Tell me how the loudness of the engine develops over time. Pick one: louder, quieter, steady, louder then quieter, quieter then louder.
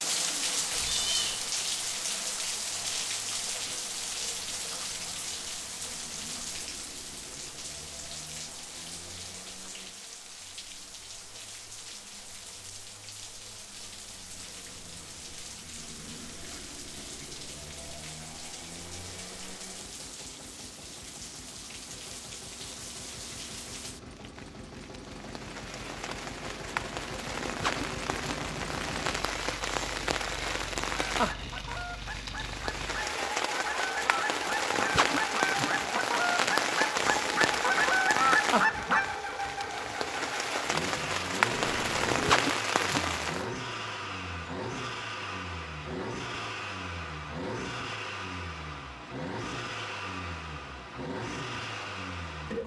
louder.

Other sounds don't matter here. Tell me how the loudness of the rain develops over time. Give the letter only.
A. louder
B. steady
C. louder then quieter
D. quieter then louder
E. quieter
D.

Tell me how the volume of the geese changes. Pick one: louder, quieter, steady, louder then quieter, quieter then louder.
louder.